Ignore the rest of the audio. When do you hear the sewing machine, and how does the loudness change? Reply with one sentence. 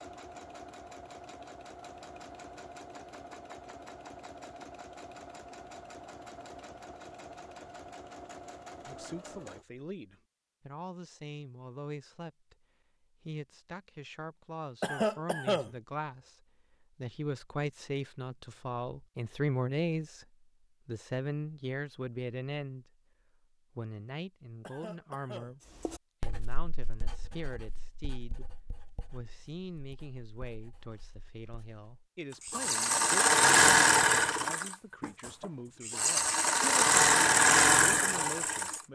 You can hear the sewing machine from 0.0 to 9.7 s, at a steady volume; and from 32.4 to 38.9 s, getting quieter then louder.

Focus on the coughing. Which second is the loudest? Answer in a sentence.
The volume of the coughing peaks at 15 seconds.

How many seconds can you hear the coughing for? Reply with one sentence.
You can hear the coughing for 2 seconds altogether.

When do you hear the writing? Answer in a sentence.
The writing can be heard from 25.9 to 31.9 s.